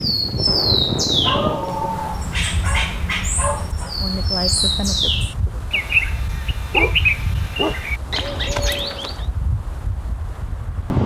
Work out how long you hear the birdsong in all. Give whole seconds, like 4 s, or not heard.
9 s.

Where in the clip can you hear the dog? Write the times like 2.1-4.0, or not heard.
1.2-4.0, 6.6-7.8.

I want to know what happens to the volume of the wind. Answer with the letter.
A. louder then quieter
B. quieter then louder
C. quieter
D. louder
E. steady
C.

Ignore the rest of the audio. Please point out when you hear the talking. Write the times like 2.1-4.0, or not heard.
4.0-5.7.